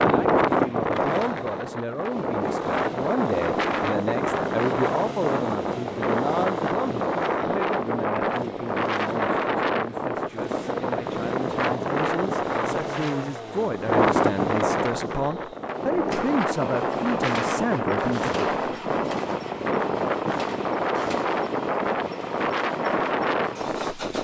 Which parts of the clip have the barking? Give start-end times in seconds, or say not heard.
not heard.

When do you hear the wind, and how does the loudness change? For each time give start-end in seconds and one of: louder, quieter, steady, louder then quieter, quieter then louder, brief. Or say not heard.
0.0-24.1 steady.